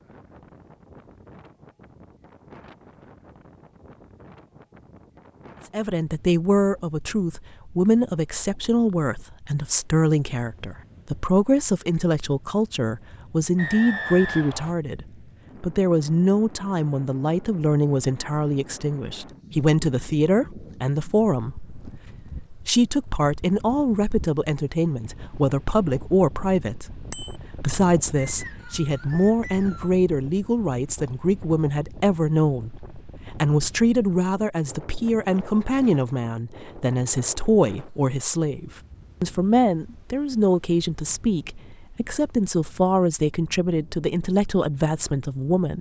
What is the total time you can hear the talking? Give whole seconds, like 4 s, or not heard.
40 s.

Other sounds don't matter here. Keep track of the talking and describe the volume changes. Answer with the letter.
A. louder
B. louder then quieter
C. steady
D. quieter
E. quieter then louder
C.